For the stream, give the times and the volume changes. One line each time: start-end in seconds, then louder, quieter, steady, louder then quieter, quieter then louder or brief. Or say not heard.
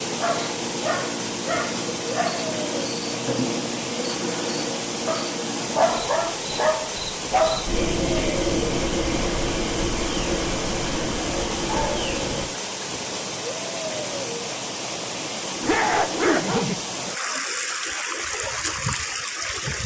0.0-19.8 steady.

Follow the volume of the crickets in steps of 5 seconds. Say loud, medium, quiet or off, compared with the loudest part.
loud, loud, loud, off.